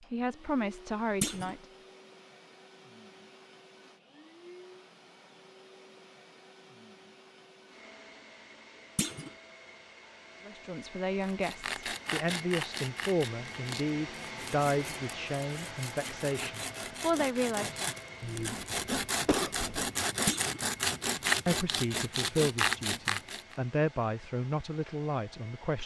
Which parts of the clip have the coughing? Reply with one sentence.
You can hear the coughing from 18.2 to 19.9 s.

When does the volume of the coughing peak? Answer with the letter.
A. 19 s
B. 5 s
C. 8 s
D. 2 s
A.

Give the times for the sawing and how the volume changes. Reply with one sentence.
You can hear the sawing from 11.2 to 23.6 s, getting quieter then louder.